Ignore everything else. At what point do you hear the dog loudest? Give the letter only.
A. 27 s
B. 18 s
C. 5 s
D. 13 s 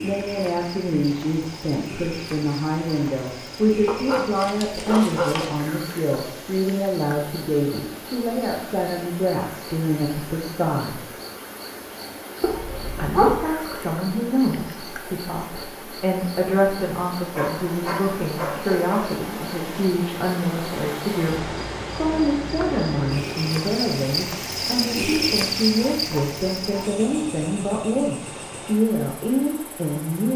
D.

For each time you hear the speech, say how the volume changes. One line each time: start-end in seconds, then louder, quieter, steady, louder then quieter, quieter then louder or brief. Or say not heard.
0.0-11.1 steady
12.9-30.3 steady.